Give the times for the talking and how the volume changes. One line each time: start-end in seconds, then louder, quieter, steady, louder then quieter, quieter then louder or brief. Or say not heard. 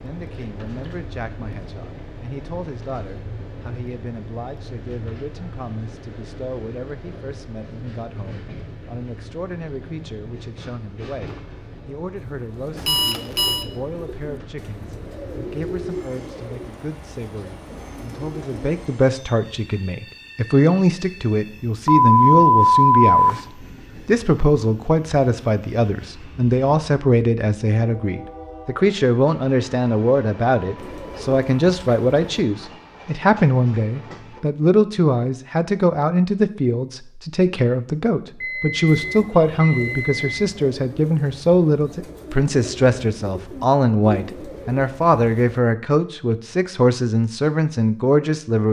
0.0-48.6 louder.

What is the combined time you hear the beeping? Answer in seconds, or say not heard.
4 s.